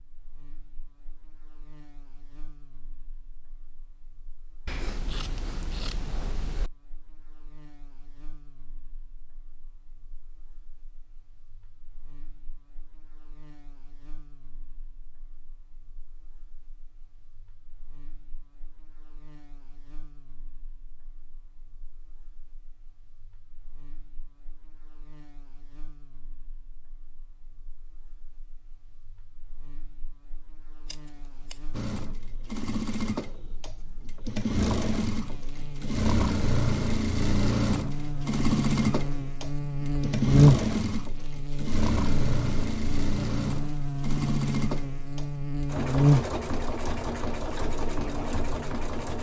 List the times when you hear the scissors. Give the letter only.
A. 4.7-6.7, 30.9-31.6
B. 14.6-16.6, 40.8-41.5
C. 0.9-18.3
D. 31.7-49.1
A.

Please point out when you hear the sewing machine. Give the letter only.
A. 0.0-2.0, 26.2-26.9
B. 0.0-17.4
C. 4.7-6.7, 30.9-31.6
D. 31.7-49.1
D.